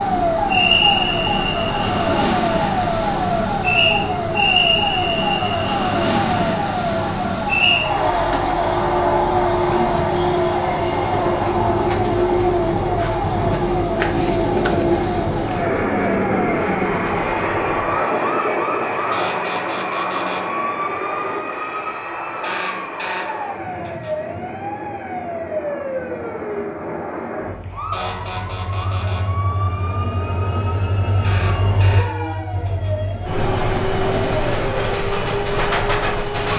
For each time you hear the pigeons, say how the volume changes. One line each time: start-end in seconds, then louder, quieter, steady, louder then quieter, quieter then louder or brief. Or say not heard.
not heard.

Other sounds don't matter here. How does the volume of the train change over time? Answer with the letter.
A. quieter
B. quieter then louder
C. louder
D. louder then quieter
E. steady
B.